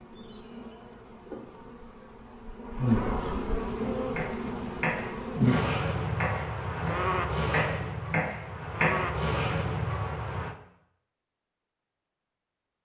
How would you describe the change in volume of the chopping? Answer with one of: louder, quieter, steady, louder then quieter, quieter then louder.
quieter then louder.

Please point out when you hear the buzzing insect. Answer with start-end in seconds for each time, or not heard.
0.0-10.6.